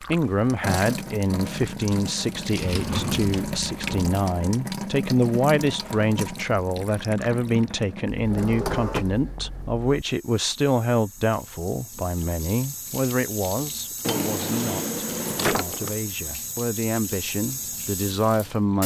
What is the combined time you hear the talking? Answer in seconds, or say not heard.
19 s.